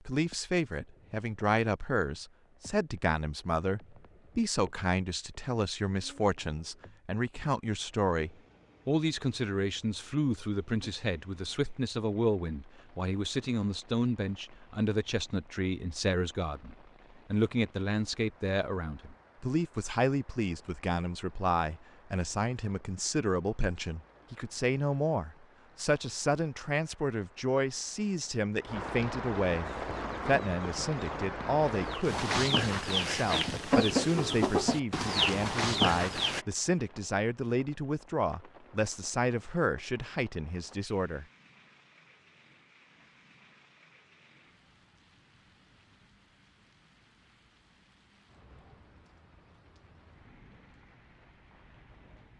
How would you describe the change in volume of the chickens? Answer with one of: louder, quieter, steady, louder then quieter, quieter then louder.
louder.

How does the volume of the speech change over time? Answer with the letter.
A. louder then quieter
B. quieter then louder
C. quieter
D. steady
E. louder
D.